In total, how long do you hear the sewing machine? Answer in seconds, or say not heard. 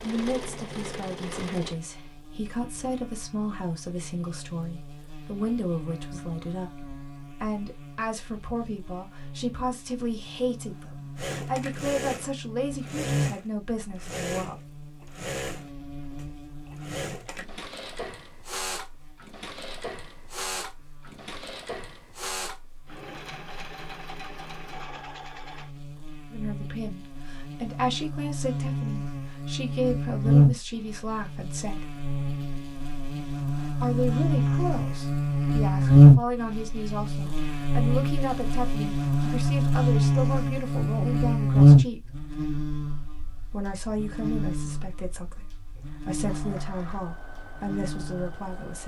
20 s.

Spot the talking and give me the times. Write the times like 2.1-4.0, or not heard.
0.0-14.6, 26.3-32.0, 33.8-42.0, 43.5-48.8.